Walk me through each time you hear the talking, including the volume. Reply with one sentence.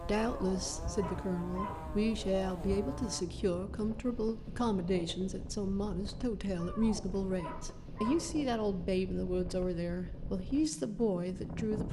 You can hear the talking from 0.0 to 11.8 s, at a steady volume.